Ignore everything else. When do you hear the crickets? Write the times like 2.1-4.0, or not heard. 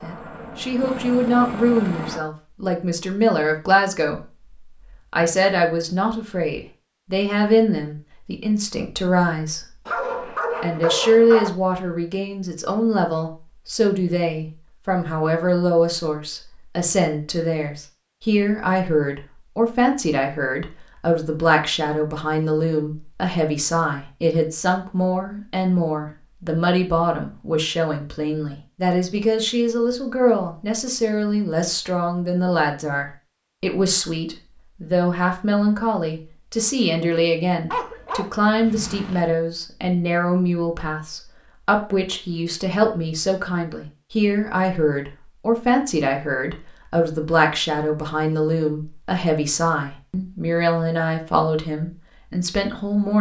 not heard.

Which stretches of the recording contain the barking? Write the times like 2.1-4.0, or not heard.
9.8-11.5, 37.7-39.2.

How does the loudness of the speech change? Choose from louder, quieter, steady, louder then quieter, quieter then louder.
steady.